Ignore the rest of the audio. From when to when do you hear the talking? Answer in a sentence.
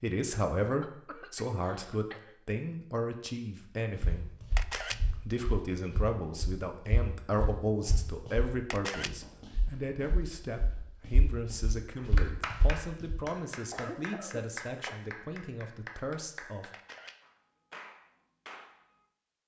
You can hear the talking from 0.0 to 4.5 s and from 5.2 to 16.7 s.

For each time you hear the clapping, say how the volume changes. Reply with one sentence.
The clapping can be heard from 11.9 to 19.0 s, getting quieter.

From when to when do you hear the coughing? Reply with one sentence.
The coughing can be heard from 0.8 to 2.4 s and from 13.7 to 14.9 s.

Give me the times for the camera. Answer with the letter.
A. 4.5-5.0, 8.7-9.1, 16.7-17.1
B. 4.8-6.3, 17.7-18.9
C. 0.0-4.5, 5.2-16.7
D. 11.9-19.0
A.